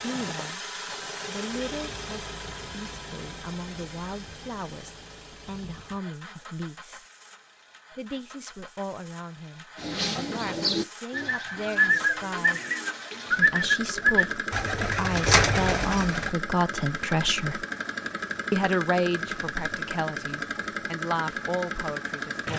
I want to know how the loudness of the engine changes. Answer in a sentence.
The loudness of the engine goes down, then up.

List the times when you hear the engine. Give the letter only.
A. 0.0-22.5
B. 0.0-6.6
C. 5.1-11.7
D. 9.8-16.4
A.